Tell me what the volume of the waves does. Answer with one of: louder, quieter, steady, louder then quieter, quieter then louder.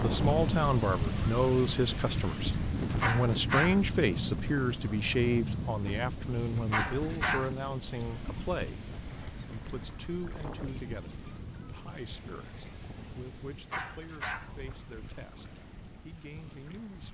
quieter.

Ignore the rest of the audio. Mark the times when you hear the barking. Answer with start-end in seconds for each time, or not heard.
3.0-3.9, 6.7-7.5, 13.7-14.6.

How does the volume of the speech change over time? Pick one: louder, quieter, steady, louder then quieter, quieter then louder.
quieter.